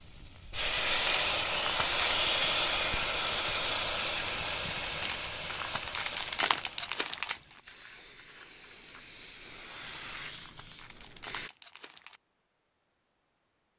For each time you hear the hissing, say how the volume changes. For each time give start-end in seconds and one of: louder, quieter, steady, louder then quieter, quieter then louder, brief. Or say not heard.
0.0-11.5 quieter then louder.